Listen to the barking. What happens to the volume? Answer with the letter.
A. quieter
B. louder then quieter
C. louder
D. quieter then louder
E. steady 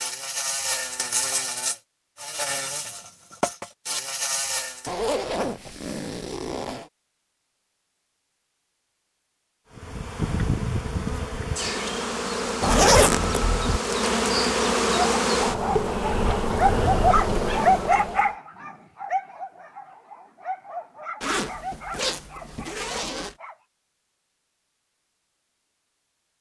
A.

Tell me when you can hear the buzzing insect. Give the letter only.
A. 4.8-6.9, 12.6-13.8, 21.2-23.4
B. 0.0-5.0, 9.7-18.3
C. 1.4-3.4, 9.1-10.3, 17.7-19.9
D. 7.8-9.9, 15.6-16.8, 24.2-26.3
B.